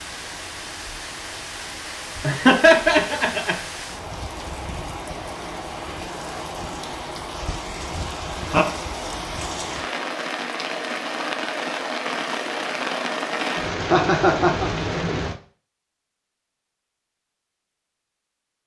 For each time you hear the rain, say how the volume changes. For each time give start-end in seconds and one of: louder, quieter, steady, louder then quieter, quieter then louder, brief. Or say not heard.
0.0-15.4 louder.